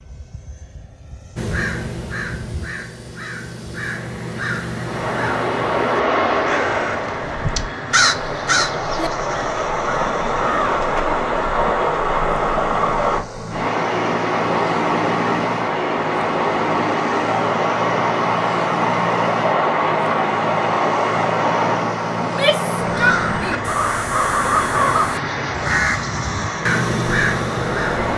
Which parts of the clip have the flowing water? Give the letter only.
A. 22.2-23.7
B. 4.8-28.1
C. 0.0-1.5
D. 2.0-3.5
B.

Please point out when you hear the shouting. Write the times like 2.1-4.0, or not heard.
22.2-23.7.